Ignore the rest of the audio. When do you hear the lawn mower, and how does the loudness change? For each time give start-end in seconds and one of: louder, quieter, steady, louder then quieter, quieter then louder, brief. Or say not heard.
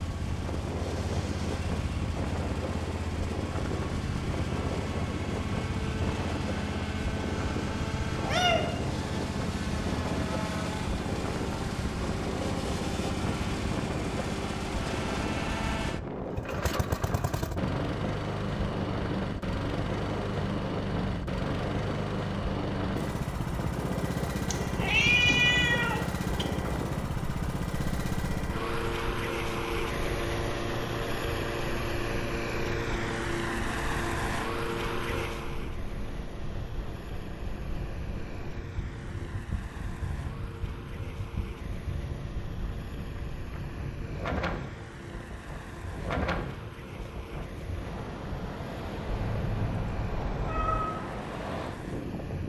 0.0-52.4 quieter.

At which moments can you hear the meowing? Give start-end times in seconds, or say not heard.
7.8-8.7, 24.4-26.4, 49.0-50.9.